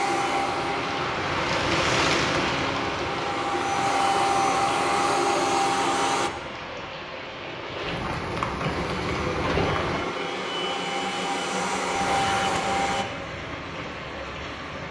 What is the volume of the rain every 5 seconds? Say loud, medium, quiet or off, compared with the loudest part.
loud, loud, medium.